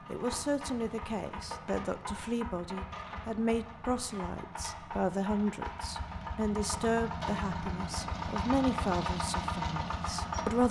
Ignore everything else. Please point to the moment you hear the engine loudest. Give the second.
9 s.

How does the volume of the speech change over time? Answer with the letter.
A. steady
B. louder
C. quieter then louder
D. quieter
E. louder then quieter
A.